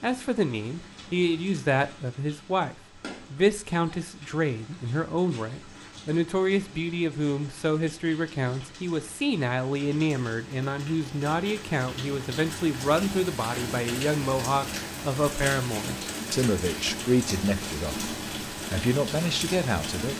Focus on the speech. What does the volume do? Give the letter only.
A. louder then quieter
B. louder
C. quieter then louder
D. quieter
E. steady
E.